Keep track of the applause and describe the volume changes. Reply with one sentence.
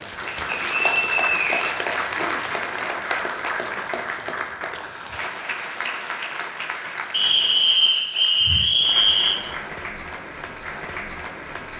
The volume of the applause goes down.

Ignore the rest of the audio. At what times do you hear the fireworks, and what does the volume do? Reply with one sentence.
The fireworks can't be heard in this clip.